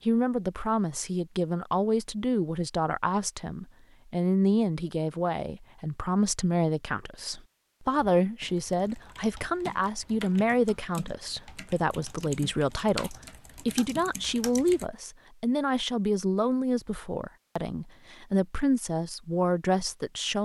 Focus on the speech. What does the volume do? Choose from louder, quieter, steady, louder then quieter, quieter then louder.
steady.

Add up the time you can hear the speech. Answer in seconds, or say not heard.
20 s.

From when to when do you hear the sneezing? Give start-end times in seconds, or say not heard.
not heard.